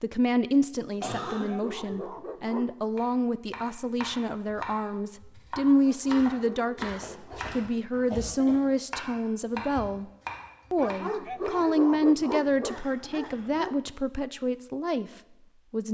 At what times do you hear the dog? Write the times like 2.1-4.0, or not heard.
1.1-2.7, 5.8-7.5, 10.8-13.8.